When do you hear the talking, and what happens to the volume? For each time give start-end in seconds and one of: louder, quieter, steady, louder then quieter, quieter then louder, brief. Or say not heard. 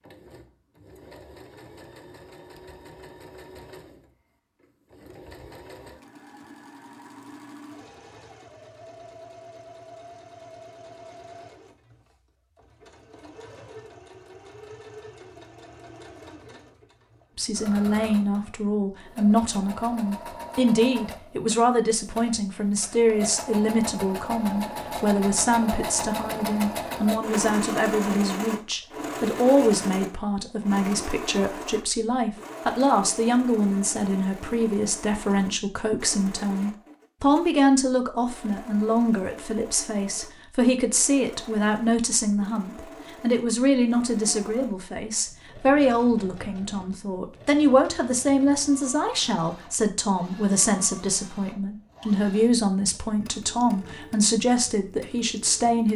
17.4-55.9 steady.